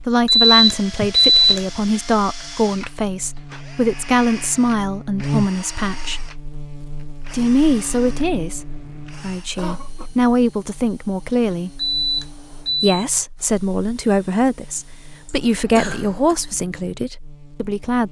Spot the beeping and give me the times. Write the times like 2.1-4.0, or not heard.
0.2-2.0, 11.8-12.9.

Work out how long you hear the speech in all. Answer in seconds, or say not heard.
16 s.